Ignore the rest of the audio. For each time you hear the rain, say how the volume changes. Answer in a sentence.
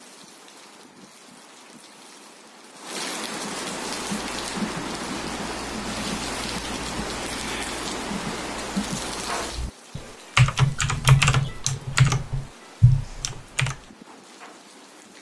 The rain can be heard from 0.0 to 15.1 s, getting louder then quieter.